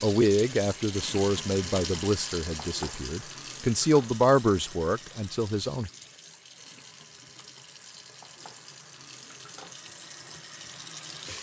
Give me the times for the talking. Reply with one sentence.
You can hear the talking from 0.0 to 5.9 s.